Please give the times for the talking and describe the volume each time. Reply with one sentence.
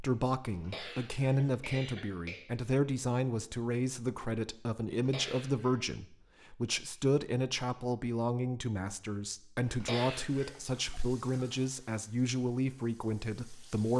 The talking can be heard from 0.0 to 13.9 s, at a steady volume.